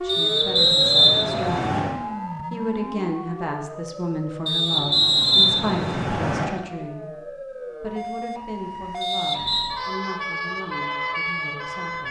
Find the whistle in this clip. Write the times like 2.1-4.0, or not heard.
0.1-1.9, 4.5-6.5, 9.0-9.7.